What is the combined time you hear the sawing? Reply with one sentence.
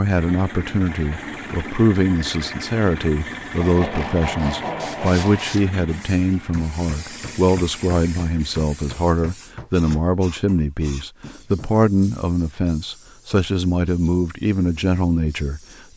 The sawing can be heard for 2 seconds in total.